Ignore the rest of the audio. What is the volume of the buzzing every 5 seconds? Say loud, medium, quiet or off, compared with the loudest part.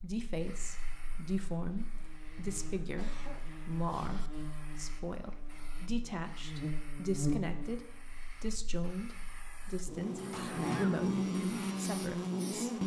quiet, medium, loud.